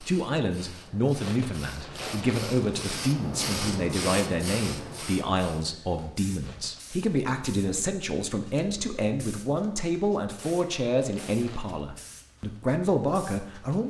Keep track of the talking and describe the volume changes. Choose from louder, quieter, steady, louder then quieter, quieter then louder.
steady.